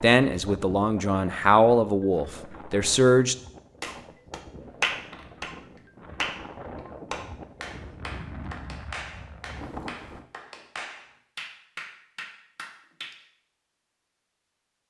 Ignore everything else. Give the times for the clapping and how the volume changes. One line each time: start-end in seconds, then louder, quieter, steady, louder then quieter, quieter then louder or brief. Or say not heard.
3.8-13.2 quieter.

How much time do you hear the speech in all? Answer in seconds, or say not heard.
3 s.